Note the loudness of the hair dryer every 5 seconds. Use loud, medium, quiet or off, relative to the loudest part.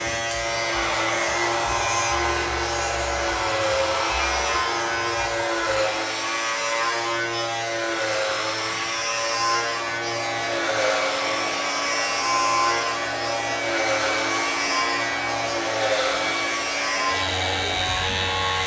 loud, medium, loud, loud.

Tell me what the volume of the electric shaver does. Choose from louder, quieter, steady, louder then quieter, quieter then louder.
steady.